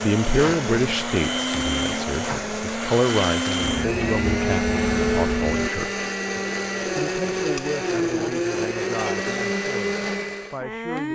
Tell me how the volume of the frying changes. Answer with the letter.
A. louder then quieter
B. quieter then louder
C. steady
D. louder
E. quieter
D.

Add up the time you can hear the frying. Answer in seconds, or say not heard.
6 s.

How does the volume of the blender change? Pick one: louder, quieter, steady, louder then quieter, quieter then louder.
steady.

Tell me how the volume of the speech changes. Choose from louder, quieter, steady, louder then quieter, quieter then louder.
quieter.